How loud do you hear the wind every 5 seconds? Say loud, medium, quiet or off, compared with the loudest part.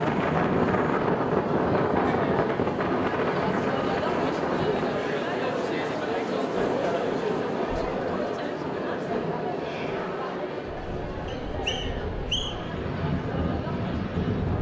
loud, medium, medium.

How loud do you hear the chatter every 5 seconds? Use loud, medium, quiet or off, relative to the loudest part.
loud, loud, medium.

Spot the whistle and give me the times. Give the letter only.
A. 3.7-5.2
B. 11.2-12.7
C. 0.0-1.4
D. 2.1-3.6
B.